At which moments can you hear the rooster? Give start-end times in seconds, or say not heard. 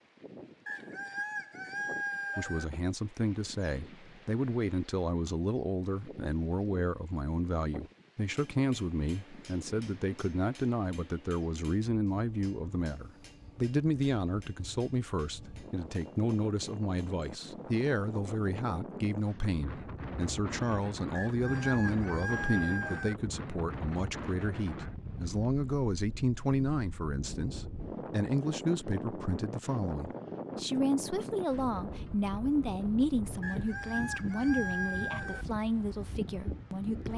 0.7-2.6, 21.1-23.1, 33.4-35.5.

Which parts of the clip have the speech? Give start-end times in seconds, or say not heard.
2.4-37.1.